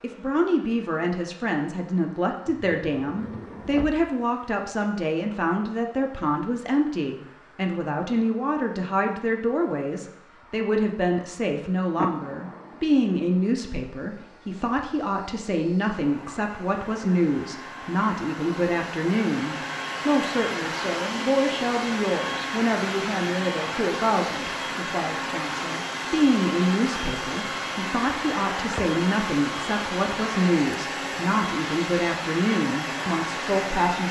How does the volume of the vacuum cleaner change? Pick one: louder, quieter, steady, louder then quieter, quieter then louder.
louder.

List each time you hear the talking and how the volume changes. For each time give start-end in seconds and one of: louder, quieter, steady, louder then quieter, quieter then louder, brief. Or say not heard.
0.0-34.0 steady.